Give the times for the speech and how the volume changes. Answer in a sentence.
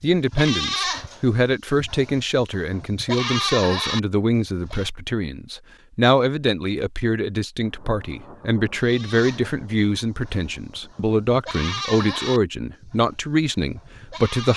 You can hear the speech from 0.0 to 14.5 s, at a steady volume.